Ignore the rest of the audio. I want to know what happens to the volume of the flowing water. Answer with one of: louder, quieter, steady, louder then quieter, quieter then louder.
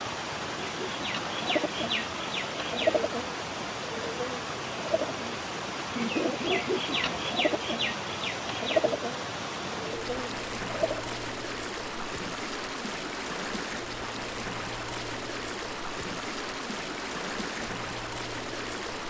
steady.